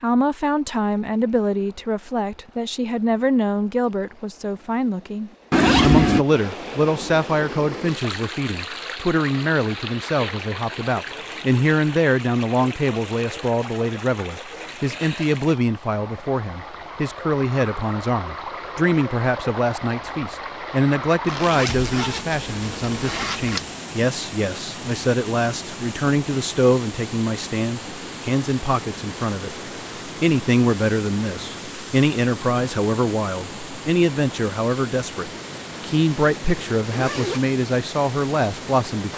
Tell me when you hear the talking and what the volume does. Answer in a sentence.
You can hear the talking from 0.0 to 39.1 s, at a steady volume.